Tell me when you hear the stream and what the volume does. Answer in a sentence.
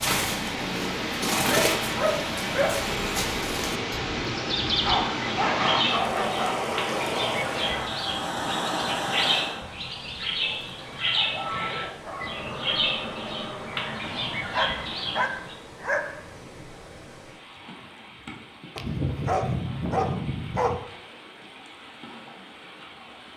You can hear the stream from 0.0 to 23.3 s, getting quieter.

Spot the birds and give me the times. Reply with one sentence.
You can hear the birds from 0.0 to 15.6 s.